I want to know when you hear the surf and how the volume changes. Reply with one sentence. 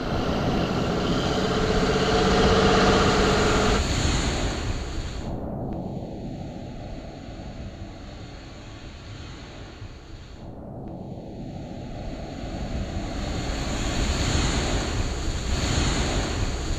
You can hear the surf from 0.0 to 16.7 s, getting quieter then louder.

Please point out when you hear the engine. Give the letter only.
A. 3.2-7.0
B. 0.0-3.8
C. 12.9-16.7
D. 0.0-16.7
B.